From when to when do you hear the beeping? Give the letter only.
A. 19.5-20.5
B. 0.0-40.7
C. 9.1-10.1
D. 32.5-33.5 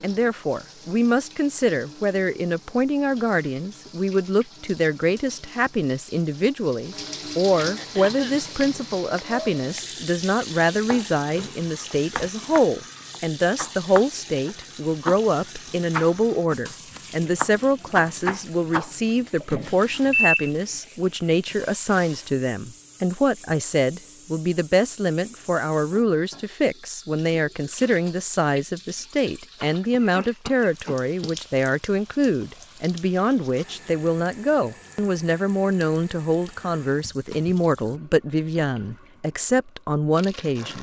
A.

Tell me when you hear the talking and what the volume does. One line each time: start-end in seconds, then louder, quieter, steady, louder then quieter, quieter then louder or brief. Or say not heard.
0.0-40.7 steady.